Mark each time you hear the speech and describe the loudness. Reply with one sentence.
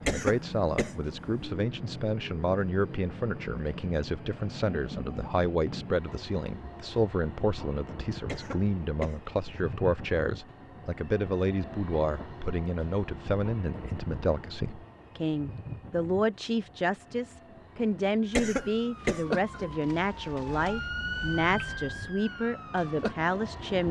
You can hear the speech from 0.0 to 23.8 s, at a steady volume.